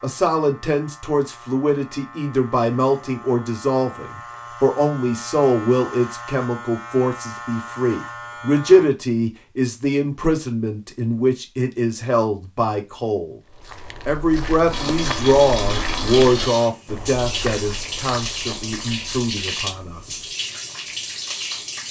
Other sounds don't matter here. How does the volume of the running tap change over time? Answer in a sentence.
The volume of the running tap stays about the same.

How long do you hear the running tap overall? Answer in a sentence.
The running tap can be heard for 7 seconds in total.